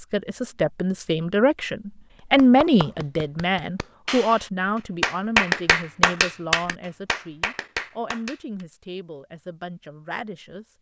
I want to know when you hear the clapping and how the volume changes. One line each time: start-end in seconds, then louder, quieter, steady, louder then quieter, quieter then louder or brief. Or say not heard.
2.4-8.7 louder then quieter.